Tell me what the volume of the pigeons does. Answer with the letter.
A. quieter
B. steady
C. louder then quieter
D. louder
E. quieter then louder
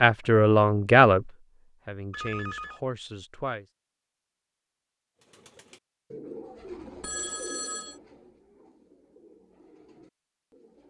A.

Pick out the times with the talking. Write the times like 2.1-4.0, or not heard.
0.0-3.6.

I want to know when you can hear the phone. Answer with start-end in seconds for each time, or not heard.
2.1-2.8, 7.0-8.0.